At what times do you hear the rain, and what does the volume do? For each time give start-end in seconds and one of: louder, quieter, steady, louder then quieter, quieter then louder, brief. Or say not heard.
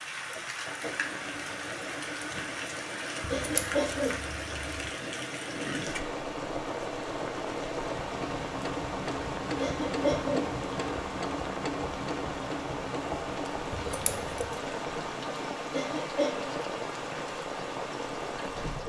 0.0-18.8 steady.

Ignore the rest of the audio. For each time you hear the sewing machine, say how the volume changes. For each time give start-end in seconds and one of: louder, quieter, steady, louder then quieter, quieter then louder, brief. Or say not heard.
0.0-18.8 louder then quieter.